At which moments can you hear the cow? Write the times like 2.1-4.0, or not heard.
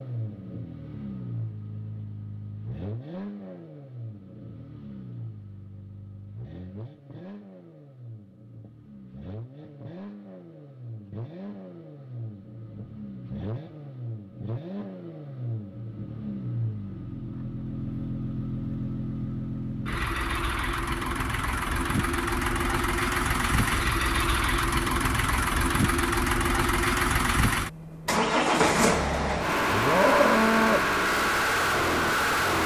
29.6-30.9.